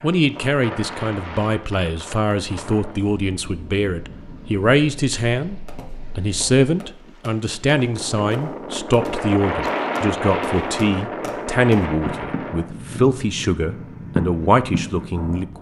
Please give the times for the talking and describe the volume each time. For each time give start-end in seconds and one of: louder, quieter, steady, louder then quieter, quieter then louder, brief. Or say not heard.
0.0-15.5 steady.